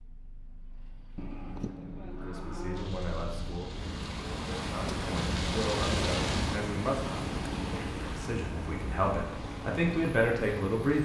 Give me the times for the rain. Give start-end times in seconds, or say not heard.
2.8-11.0.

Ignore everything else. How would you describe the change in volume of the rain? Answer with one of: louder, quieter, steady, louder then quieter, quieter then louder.
louder then quieter.